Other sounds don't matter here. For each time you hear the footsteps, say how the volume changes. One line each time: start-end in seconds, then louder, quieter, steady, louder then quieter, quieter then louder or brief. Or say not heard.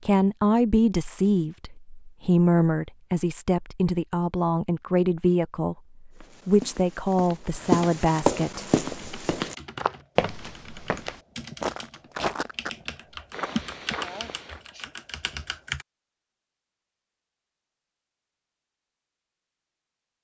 6.2-14.6 quieter.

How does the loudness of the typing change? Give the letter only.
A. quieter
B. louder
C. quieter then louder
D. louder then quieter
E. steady
D.